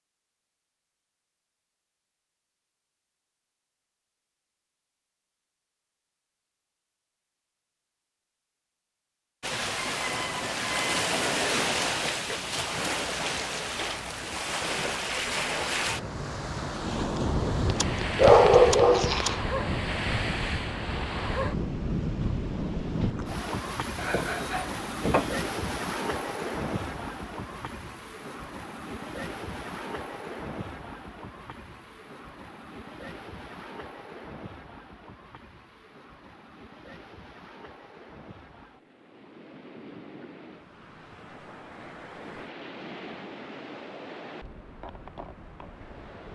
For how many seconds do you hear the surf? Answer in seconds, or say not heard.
37 s.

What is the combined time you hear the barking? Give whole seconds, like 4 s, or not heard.
3 s.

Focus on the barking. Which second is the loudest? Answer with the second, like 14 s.
18 s.